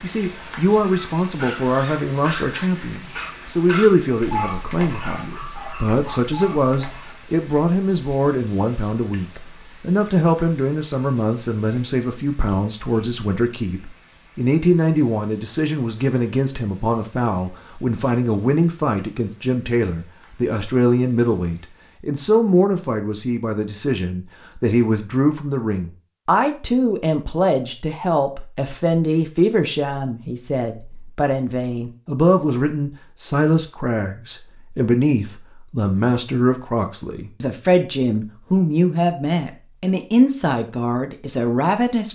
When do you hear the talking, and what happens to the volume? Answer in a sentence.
You can hear the talking from 0.0 to 42.0 s, at a steady volume.